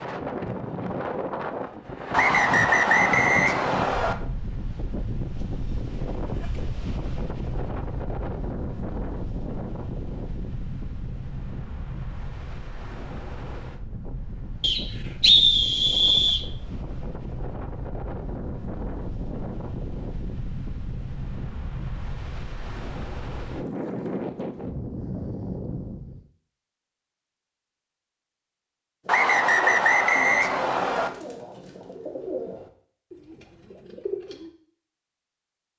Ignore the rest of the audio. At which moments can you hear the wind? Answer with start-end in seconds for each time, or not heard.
0.0-26.2.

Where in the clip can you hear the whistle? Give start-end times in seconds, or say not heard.
2.1-4.2, 14.6-16.4, 29.1-31.1.